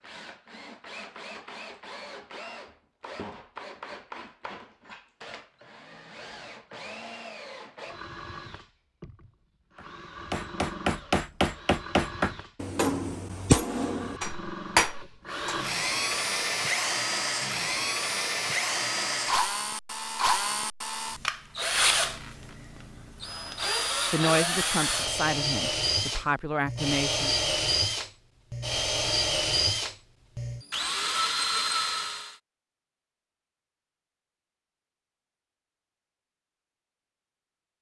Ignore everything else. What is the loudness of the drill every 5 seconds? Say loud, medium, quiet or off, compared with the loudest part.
quiet, quiet, quiet, loud, loud, loud, loud, off.